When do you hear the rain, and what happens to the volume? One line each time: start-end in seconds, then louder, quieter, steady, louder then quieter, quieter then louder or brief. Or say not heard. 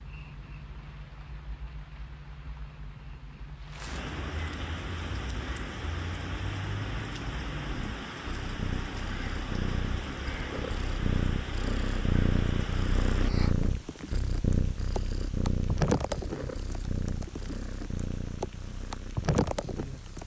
0.0-20.2 louder.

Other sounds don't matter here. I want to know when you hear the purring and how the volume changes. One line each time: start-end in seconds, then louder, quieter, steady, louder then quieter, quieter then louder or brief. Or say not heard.
0.0-20.2 louder then quieter.